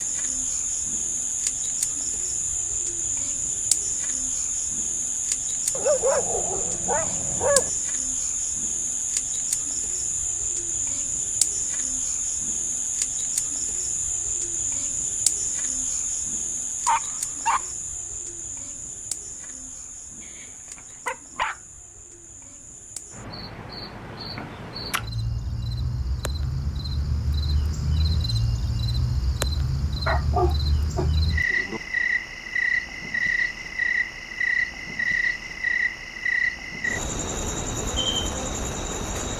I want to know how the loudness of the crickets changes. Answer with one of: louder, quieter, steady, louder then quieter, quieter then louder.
quieter then louder.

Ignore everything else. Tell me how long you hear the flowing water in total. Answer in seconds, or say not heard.
not heard.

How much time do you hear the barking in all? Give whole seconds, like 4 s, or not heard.
5 s.